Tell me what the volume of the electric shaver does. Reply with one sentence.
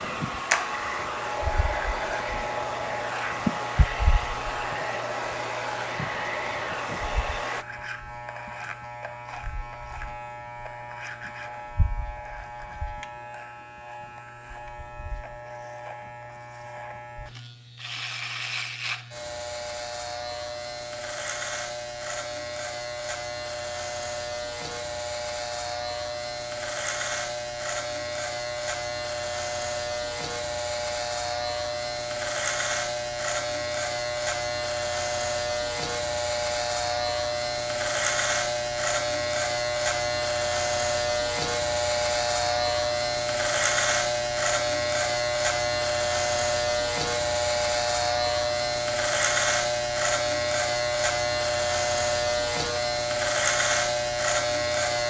The volume of the electric shaver goes up.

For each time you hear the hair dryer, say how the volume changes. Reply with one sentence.
You can hear the hair dryer from 0.0 to 7.7 s, at a steady volume.